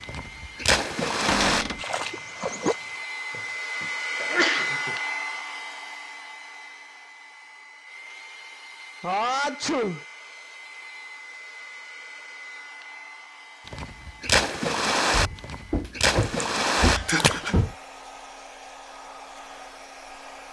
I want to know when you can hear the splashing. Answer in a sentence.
You can hear the splashing from 0.0 to 3.0 s and from 13.7 to 17.6 s.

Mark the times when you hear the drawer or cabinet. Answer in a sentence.
The drawer or cabinet can be heard from 1.2 to 1.8 s and from 15.1 to 17.8 s.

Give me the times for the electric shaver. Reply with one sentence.
You can't hear the electric shaver here.